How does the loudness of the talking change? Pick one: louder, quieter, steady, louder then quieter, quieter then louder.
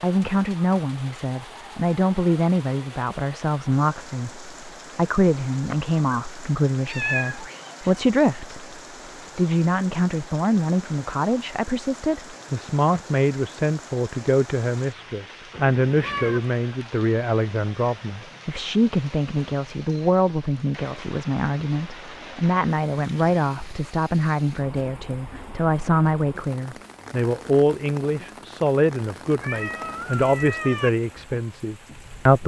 steady.